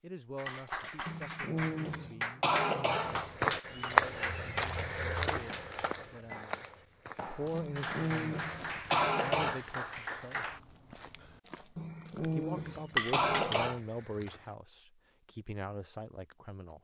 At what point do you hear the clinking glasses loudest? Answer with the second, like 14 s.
13 s.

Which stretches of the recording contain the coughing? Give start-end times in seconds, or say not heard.
1.1-3.3, 7.5-9.6, 11.8-13.8.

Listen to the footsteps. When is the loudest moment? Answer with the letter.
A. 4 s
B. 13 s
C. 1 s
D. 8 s
A.